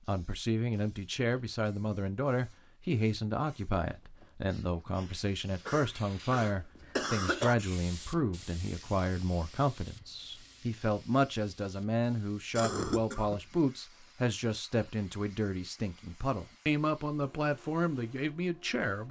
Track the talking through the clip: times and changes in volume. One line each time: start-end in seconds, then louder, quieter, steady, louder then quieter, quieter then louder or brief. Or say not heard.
0.1-19.0 steady.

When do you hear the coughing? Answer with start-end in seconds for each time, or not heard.
5.7-7.5, 12.6-13.4.